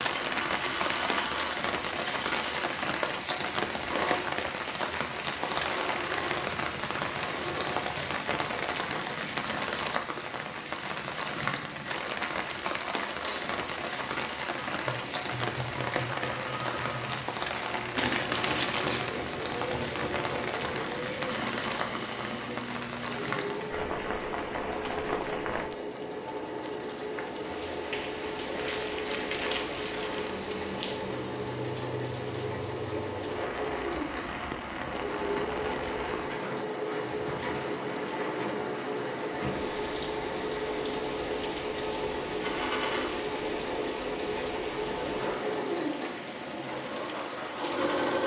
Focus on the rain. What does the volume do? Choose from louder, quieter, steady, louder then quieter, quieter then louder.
quieter.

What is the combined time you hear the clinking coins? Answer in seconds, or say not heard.
2 s.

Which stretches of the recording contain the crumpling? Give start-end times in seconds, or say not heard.
17.9-19.1, 28.6-30.4.